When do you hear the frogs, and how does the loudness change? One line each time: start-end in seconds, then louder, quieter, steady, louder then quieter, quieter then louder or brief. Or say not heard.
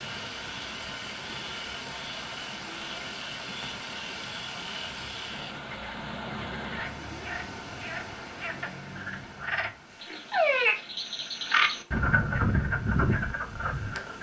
0.0-14.1 louder.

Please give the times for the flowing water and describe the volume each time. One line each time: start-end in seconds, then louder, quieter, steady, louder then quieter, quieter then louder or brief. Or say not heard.
0.0-14.1 quieter.